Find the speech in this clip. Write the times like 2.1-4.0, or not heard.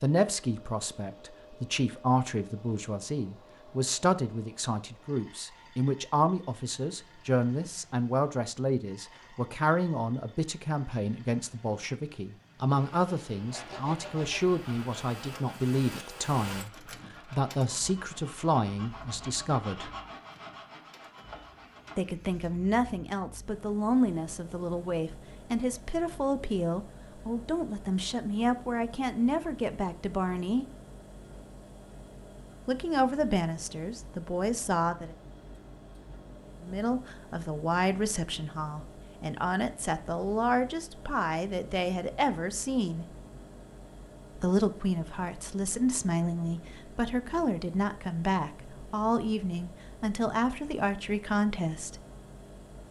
0.0-19.9, 21.9-30.6, 32.6-35.1, 36.6-43.0, 44.4-52.0.